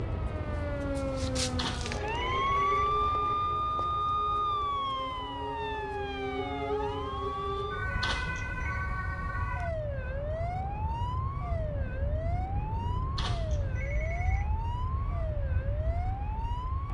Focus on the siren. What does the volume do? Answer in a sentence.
The volume of the siren goes down.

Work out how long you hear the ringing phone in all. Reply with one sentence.
You can hear the ringing phone for 4 seconds altogether.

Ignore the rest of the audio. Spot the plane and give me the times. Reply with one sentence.
You can hear the plane from 0.0 to 16.8 s.